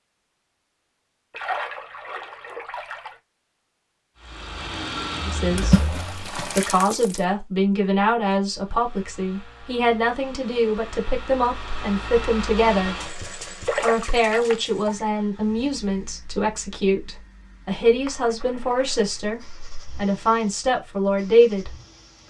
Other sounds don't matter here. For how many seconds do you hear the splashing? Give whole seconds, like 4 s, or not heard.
7 s.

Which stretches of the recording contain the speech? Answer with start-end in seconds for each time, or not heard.
5.2-12.9, 13.8-21.7.